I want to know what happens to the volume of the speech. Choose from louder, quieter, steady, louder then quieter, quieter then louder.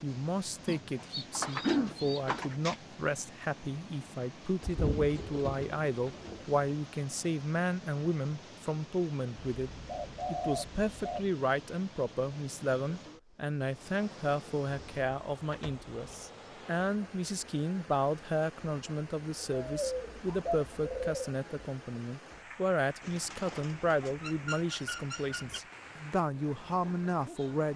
steady.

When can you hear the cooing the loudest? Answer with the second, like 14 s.
2 s.